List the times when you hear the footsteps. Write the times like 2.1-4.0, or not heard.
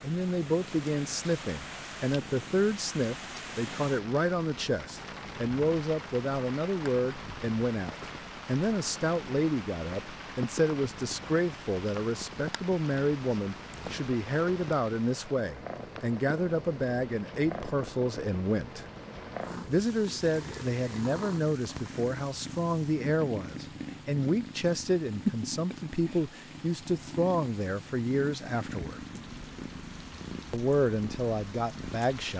not heard.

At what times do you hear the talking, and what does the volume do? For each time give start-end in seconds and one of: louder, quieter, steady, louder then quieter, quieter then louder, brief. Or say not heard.
0.0-18.9 steady
19.6-29.1 steady
30.5-32.3 brief.